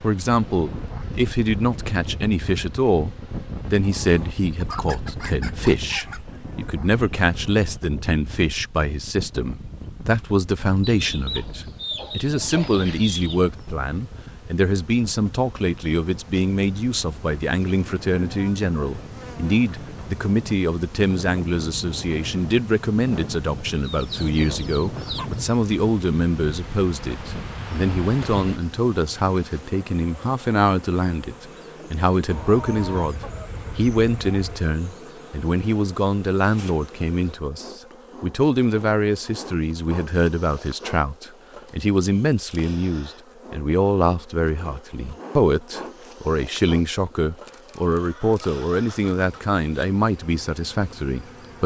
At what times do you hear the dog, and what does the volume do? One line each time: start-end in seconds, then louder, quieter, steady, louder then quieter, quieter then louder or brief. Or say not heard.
not heard.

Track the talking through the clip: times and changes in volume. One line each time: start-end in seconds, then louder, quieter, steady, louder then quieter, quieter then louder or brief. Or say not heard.
0.0-51.6 steady.